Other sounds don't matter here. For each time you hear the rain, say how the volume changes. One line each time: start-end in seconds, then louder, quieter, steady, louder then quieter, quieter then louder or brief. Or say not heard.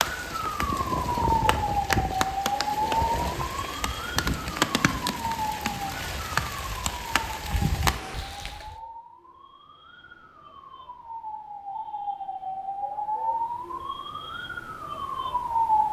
0.0-8.8 steady.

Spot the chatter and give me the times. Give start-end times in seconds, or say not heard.
not heard.